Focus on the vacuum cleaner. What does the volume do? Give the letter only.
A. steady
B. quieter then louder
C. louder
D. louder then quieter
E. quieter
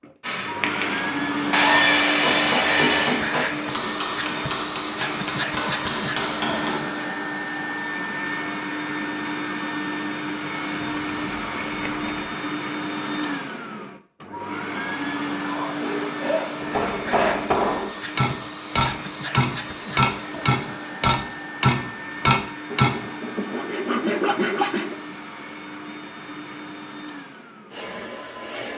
E.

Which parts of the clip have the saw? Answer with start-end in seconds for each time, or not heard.
1.5-3.3, 10.8-12.3, 15.8-17.4, 22.7-24.9.